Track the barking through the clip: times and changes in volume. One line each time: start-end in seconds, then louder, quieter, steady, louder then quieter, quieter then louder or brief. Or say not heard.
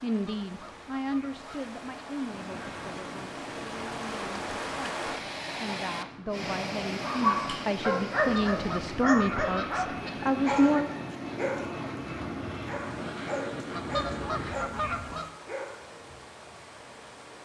7.0-16.2 quieter.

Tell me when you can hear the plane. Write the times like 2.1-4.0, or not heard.
2.2-14.8.